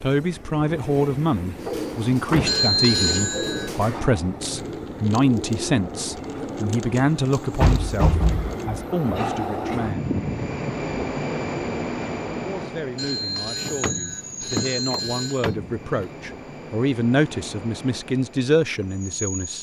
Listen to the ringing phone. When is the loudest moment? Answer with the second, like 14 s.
3 s.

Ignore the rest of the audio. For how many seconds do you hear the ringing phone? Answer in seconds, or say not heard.
4 s.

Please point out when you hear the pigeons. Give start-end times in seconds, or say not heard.
1.6-8.7.